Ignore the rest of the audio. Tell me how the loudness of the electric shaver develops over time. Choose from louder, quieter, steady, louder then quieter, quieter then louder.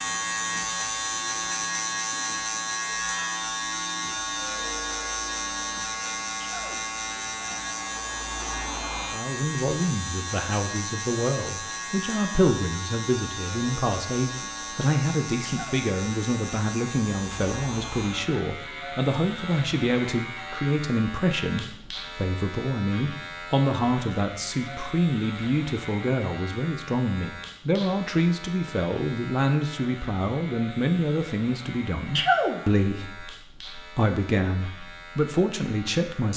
quieter.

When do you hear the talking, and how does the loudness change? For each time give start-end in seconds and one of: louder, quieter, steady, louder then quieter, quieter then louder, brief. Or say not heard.
9.1-36.3 steady.